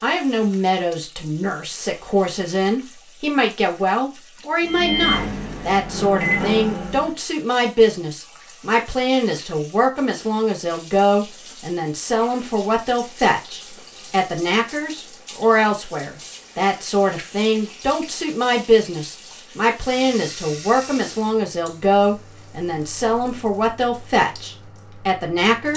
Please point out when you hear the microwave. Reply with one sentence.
The microwave can be heard from 4.6 to 7.2 s.